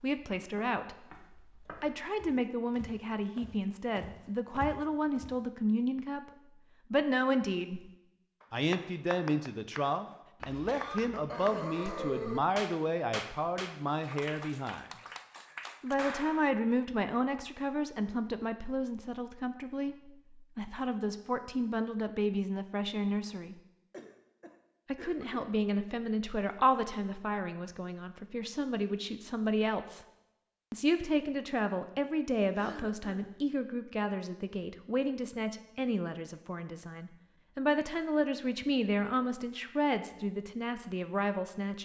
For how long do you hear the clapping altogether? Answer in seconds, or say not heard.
9 s.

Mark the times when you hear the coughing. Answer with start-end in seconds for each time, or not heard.
10.4-12.4, 23.9-25.4, 32.5-33.4.